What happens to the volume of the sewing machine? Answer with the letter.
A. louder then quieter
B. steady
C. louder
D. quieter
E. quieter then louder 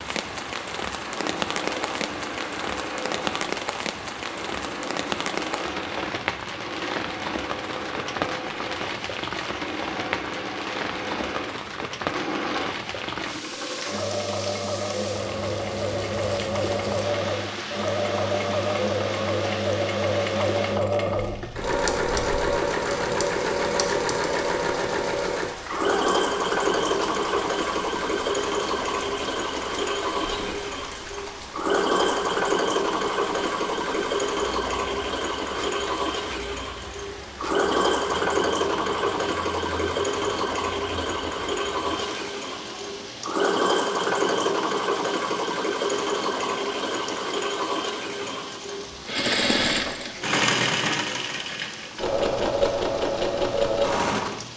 C.